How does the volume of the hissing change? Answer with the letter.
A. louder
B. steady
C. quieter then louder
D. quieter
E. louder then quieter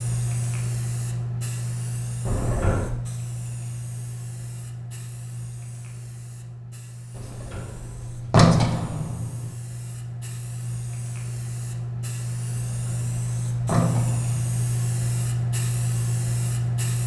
C.